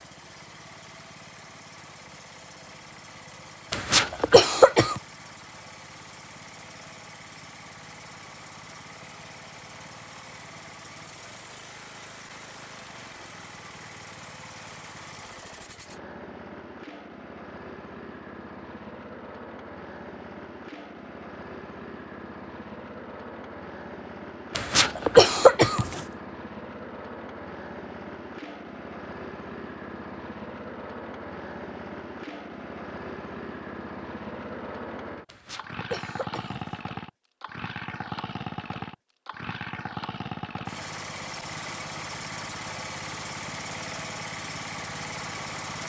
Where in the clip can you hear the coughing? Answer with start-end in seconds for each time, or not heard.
3.7-5.0, 24.6-26.1, 35.2-36.8.